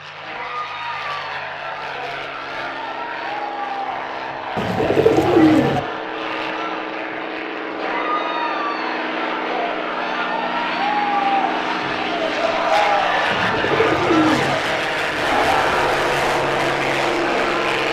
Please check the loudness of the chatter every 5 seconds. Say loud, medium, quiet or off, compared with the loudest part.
medium, medium, loud, loud.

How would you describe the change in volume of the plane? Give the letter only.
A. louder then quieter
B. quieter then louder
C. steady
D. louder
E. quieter
D.